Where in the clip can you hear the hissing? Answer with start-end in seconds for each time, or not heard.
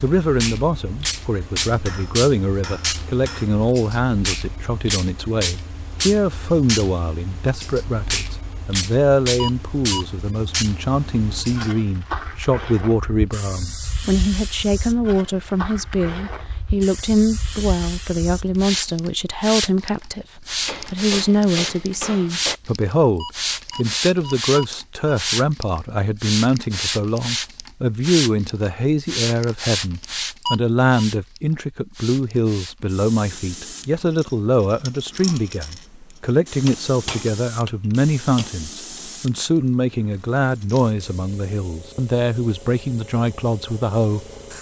0.0-44.5.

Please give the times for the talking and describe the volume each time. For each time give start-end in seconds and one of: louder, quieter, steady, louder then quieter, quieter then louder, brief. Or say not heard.
0.0-44.5 steady.